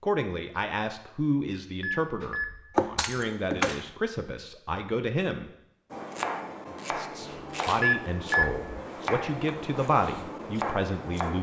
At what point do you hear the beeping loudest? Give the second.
8 s.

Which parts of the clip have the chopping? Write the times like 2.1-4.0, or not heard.
2.2-3.9, 5.9-11.3.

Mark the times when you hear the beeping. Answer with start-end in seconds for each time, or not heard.
1.8-2.8, 7.8-8.6.